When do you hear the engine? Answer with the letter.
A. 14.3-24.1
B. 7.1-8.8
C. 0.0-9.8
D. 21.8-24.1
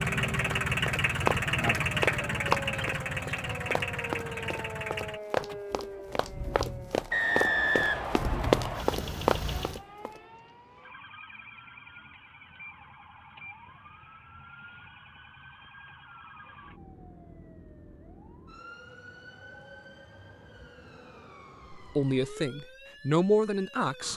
C.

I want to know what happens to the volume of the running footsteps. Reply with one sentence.
The volume of the running footsteps goes down, then up.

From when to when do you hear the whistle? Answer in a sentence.
The whistle can be heard from 7.1 to 8.8 s.